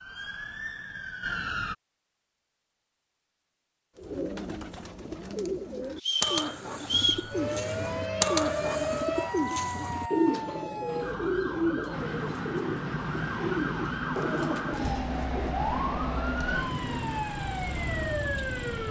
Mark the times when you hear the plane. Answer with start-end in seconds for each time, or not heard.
11.9-17.2.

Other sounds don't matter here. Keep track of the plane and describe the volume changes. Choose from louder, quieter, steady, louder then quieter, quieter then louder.
steady.